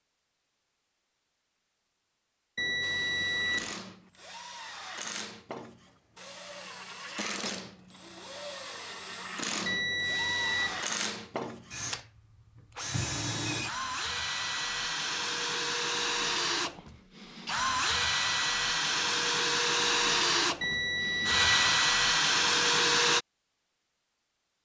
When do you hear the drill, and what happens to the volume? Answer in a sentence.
You can hear the drill from 2.8 to 23.2 s, getting louder.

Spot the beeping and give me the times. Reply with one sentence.
You can hear the beeping from 2.5 to 3.8 s, from 9.7 to 10.8 s and from 20.6 to 21.8 s.